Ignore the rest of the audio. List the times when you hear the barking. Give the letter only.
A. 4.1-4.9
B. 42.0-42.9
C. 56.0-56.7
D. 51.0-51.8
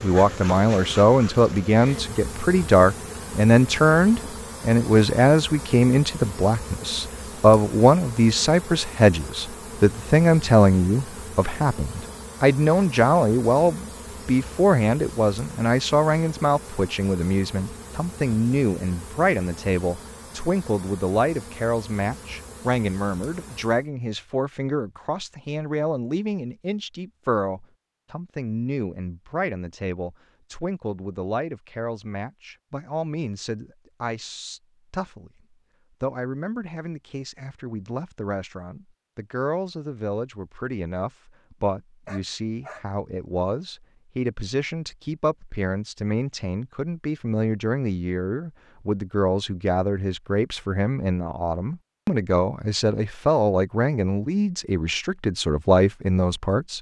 B.